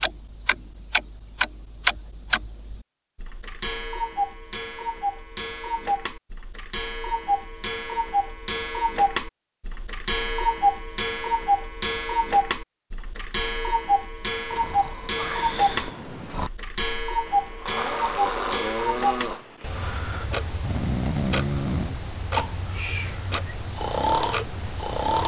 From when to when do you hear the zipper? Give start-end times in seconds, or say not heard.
not heard.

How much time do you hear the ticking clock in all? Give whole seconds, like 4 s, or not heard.
25 s.